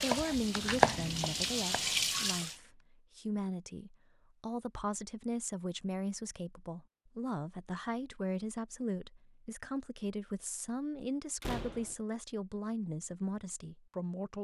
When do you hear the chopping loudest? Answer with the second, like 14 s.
1 s.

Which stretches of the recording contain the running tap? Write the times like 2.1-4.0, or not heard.
0.0-2.5.